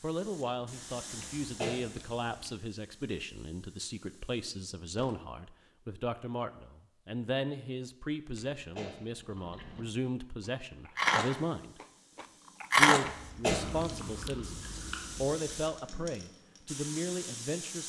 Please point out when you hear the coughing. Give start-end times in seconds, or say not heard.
1.2-2.5, 8.3-9.1, 13.1-14.3.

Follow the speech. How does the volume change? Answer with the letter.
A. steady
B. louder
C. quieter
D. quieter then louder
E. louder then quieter
A.